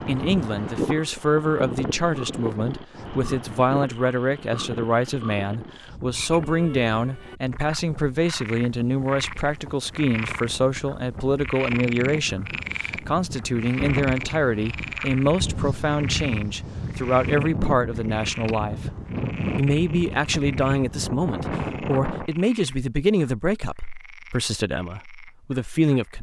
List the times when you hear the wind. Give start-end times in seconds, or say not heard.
0.0-22.3.